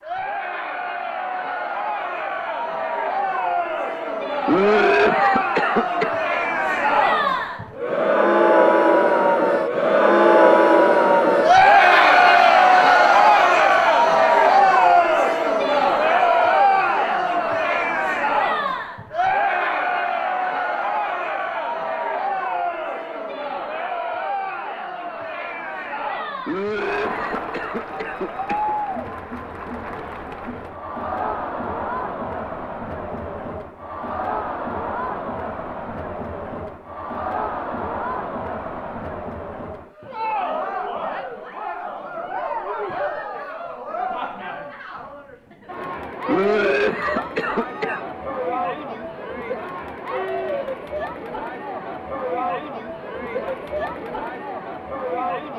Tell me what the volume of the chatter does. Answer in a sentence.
The loudness of the chatter goes down.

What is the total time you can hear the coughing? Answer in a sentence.
The coughing can be heard for 6 seconds in total.